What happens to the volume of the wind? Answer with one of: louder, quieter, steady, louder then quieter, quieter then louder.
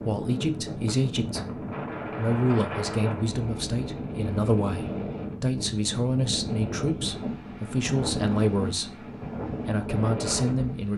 steady.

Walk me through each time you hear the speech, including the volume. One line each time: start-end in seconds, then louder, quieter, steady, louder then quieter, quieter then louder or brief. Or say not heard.
0.0-10.9 steady.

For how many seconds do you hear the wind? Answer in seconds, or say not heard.
11 s.